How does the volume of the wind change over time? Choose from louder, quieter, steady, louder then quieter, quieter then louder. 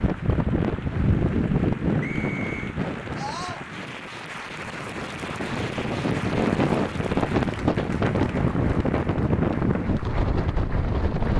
quieter then louder.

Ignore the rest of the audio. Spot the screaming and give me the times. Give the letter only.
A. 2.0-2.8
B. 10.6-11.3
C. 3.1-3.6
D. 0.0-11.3
C.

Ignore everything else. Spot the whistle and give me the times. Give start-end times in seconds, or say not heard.
2.0-2.8.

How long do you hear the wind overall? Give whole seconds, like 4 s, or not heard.
11 s.